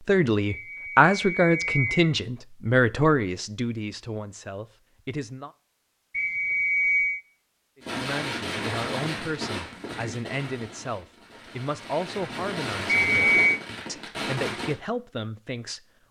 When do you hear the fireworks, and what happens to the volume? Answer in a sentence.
The fireworks can be heard from 7.8 to 14.8 s, getting quieter then louder.